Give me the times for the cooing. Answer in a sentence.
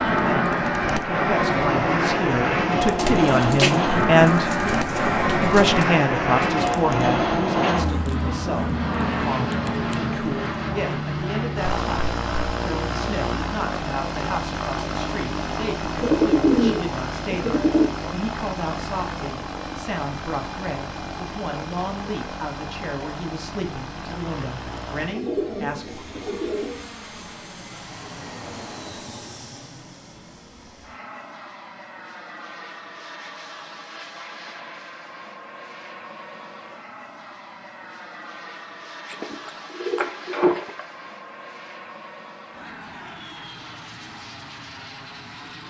You can hear the cooing from 3.0 to 5.8 s, from 15.9 to 17.9 s, from 24.6 to 26.9 s and from 39.1 to 40.9 s.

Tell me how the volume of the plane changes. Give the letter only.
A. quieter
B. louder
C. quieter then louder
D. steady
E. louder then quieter
A.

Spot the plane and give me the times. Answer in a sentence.
The plane can be heard from 0.0 to 45.6 s.